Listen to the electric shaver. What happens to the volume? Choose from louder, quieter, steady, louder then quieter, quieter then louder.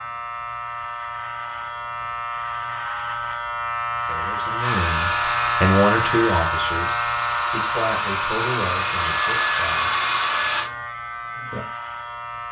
louder then quieter.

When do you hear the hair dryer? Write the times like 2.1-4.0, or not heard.
4.6-10.7.